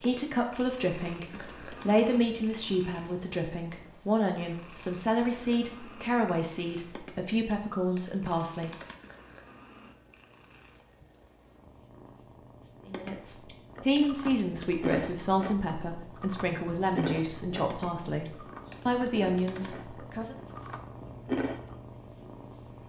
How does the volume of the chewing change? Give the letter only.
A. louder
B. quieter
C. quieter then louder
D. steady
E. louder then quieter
C.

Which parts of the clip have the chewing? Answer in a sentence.
You can hear the chewing from 13.7 to 21.9 s.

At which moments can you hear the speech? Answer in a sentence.
You can hear the speech from 0.0 to 8.7 s and from 12.8 to 20.4 s.